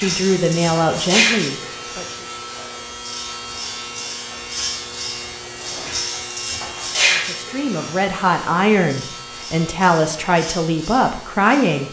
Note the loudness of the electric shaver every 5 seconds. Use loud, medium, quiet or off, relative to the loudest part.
loud, loud, medium.